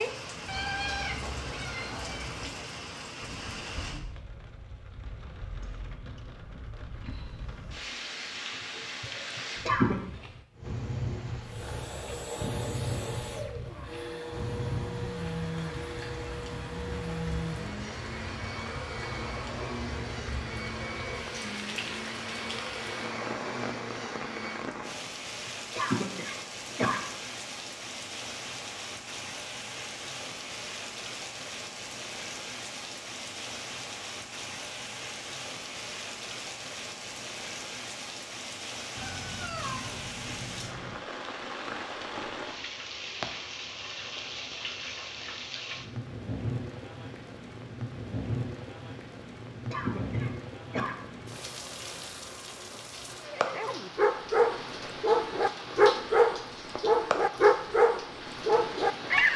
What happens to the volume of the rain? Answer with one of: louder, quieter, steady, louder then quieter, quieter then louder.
steady.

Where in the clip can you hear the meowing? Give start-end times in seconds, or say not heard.
0.5-2.5, 39.0-41.0.